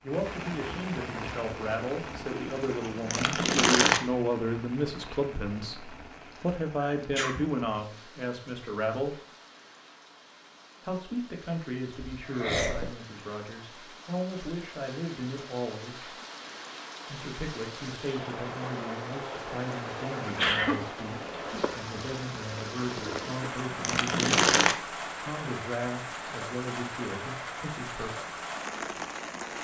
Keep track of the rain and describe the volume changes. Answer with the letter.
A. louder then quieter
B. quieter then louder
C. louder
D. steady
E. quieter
B.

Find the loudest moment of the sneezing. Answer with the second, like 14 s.
21 s.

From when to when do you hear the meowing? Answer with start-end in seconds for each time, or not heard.
not heard.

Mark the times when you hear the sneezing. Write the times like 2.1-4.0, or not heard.
6.8-7.5, 12.2-12.9, 20.2-21.6.